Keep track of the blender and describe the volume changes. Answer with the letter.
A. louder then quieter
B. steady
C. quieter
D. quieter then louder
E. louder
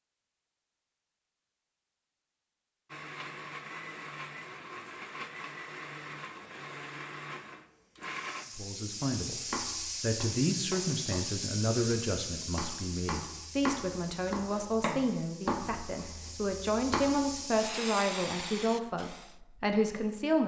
B.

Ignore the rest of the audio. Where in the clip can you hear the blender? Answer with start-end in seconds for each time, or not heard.
2.9-8.4.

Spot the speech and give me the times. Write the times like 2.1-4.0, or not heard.
8.6-9.4, 10.0-20.4.